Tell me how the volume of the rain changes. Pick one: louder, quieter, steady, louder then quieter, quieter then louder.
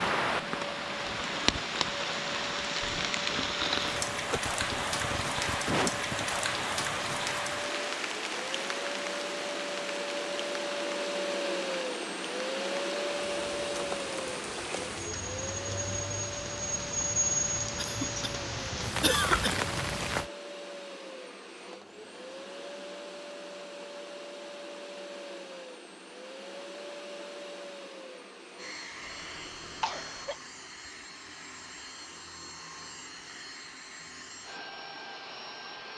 quieter then louder.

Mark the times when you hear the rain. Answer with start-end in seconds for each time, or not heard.
0.0-20.3.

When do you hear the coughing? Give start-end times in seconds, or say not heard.
3.8-6.3, 17.8-18.3, 19.0-19.6, 29.1-30.4.